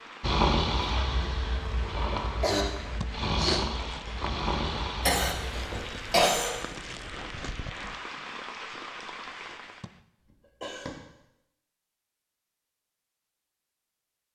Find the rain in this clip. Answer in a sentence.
You can hear the rain from 0.0 to 10.0 s.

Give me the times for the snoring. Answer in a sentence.
The snoring can be heard from 0.2 to 5.8 s.